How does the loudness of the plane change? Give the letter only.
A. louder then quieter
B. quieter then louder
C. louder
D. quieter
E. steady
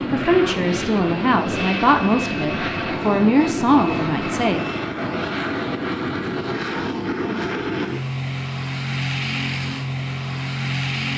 E.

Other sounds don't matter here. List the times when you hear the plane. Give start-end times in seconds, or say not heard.
0.0-11.1.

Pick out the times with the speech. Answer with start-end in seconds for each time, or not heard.
0.1-4.6.